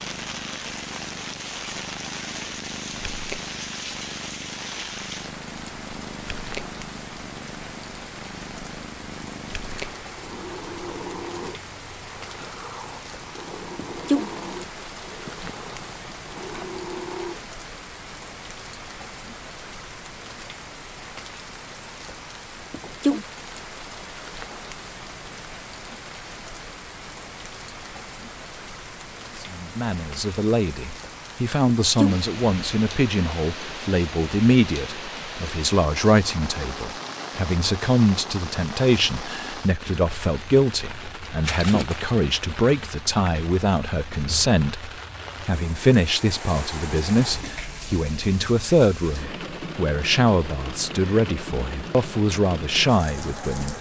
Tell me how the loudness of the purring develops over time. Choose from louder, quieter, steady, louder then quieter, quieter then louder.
steady.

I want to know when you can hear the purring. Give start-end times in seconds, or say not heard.
0.0-17.4.